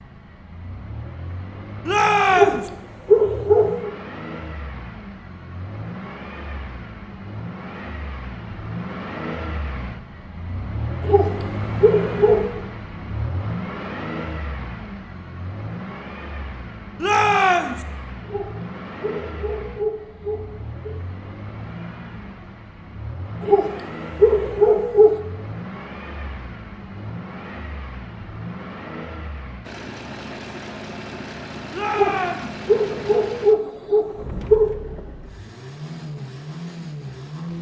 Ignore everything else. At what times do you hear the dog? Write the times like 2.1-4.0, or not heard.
2.3-3.9, 11.0-12.6, 18.2-20.9, 23.4-25.1, 31.9-34.8.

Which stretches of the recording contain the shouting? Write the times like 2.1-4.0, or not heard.
1.9-2.7, 17.0-17.9, 31.7-32.5.